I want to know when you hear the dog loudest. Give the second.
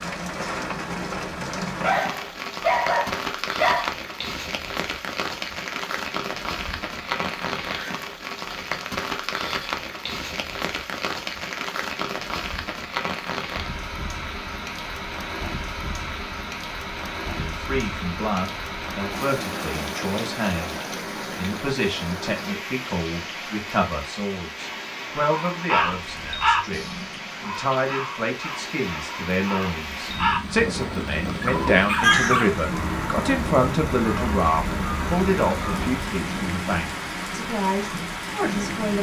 3 s.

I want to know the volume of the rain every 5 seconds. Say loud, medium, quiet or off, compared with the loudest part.
loud, loud, loud, loud, loud, medium, loud, loud.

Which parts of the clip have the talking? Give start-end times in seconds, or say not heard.
17.4-38.9.